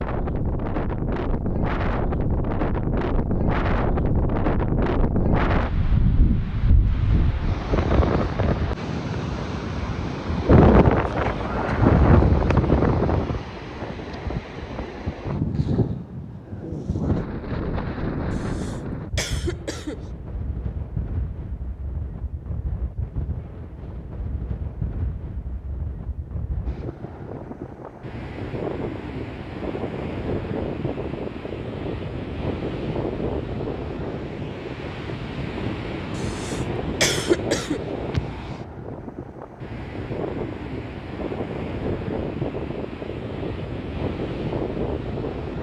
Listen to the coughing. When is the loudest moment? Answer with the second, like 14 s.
37 s.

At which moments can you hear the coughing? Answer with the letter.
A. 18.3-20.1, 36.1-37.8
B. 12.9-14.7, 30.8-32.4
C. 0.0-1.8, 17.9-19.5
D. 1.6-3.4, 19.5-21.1
A.